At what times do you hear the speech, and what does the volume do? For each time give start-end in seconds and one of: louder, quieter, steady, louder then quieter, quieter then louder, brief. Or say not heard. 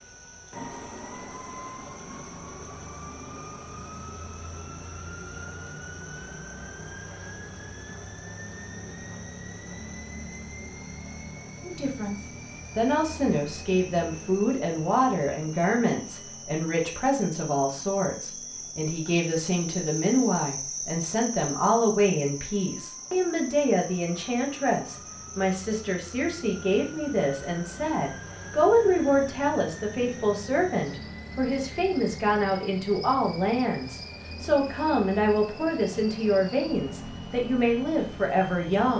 11.6-38.9 steady.